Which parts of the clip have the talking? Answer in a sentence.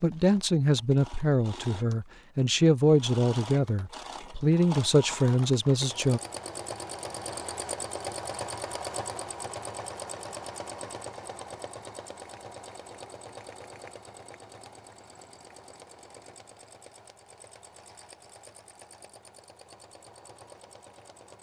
The talking can be heard from 0.0 to 6.2 s.